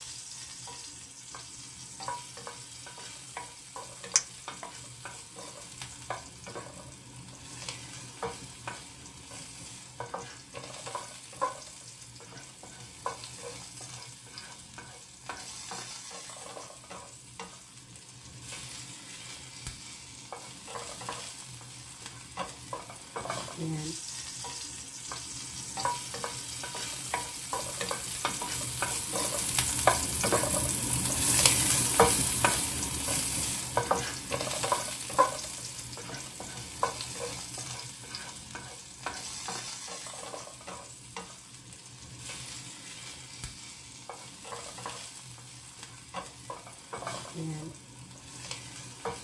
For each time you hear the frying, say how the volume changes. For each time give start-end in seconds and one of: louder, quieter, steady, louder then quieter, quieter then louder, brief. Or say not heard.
0.0-49.2 louder then quieter.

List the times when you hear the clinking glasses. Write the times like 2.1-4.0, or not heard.
4.2-4.7.